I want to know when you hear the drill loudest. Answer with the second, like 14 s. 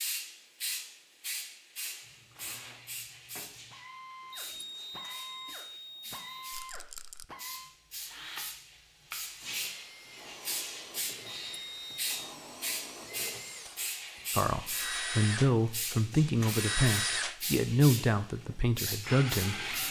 17 s.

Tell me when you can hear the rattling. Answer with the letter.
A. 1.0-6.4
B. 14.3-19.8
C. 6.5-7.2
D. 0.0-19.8
C.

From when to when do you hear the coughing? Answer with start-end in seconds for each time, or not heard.
not heard.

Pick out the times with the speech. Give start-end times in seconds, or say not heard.
14.3-19.8.